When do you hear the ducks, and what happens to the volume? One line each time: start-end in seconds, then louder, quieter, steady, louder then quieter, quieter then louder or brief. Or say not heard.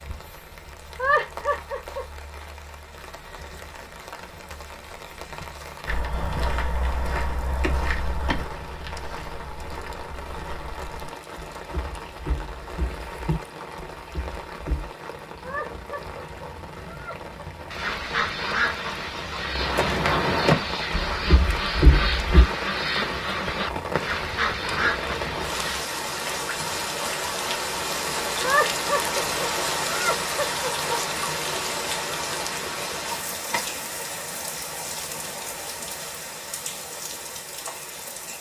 17.7-25.8 steady.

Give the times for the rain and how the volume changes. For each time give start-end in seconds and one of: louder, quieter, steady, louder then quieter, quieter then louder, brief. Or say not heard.
0.0-38.3 louder.